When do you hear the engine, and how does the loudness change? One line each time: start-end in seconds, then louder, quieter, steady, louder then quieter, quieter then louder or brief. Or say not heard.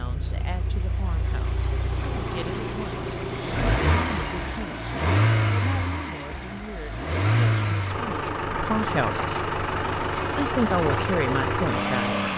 0.0-12.3 louder.